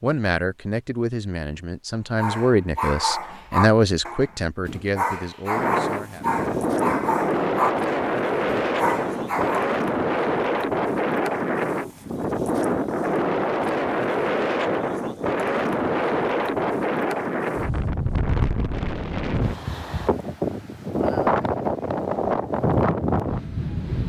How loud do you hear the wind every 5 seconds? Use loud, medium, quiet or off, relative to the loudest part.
off, loud, loud, loud, loud.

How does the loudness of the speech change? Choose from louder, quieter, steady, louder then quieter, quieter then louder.
louder then quieter.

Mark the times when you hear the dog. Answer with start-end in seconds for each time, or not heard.
2.1-9.8.